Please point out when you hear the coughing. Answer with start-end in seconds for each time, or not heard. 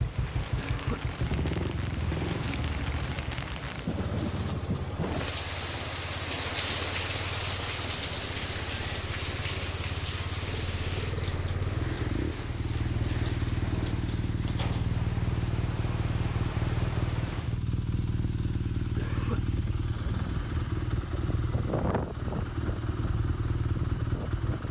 0.6-1.1, 18.9-19.4.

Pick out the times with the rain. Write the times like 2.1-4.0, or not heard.
0.0-17.6.